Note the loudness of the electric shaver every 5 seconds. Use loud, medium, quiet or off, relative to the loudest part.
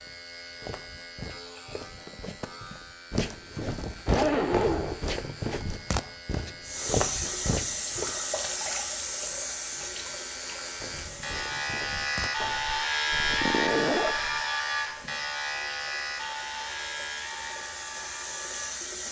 quiet, quiet, loud, medium.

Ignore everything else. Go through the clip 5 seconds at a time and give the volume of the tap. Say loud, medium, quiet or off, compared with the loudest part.
off, loud, medium, medium.